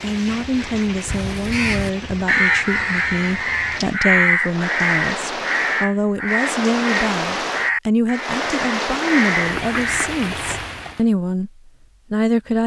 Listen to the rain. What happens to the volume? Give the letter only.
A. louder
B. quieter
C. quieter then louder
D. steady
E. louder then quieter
A.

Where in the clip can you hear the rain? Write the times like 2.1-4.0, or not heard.
0.0-11.1.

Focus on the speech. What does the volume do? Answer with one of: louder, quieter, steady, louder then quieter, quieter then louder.
steady.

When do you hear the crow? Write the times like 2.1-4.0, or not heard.
1.1-10.1.